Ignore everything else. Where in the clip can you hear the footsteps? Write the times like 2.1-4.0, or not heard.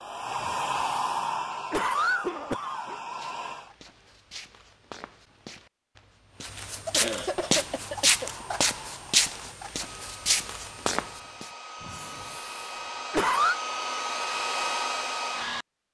3.1-11.5.